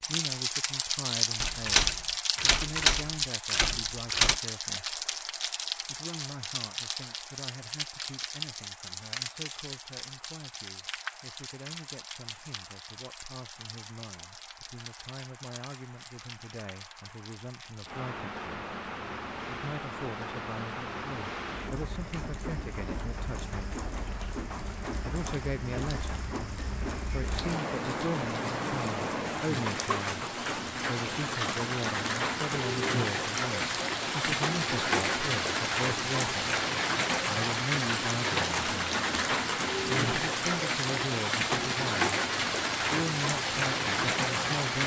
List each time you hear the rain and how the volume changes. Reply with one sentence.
The rain can be heard from 0.0 to 44.8 s, getting quieter then louder.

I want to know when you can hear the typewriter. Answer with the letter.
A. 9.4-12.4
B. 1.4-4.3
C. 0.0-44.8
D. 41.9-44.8
B.